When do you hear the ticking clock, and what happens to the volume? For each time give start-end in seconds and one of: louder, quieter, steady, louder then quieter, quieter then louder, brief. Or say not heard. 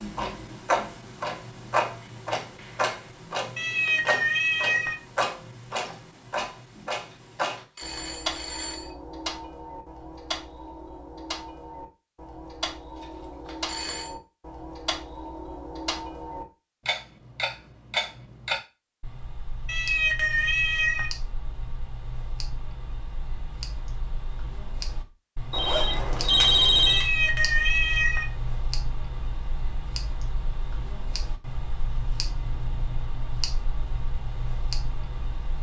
0.0-35.5 quieter.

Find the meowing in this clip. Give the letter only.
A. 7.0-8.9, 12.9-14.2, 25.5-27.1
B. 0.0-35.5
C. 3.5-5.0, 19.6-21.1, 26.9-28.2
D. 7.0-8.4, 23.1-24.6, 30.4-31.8
C.